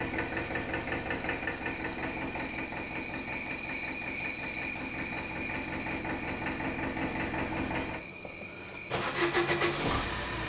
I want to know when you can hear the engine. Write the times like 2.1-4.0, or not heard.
0.0-10.4.